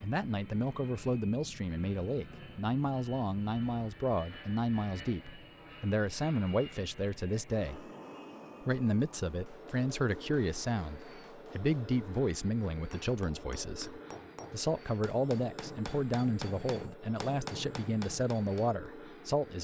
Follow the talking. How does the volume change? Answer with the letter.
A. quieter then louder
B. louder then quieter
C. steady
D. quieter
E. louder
C.